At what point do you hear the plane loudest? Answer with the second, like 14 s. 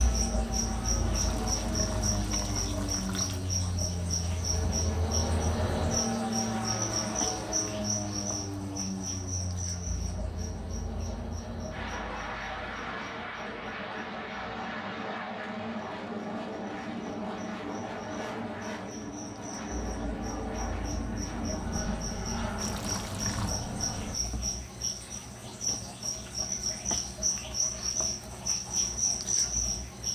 6 s.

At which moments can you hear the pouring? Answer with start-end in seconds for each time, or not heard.
1.1-3.5, 22.6-23.6.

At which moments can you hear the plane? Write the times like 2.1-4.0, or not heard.
0.0-24.2.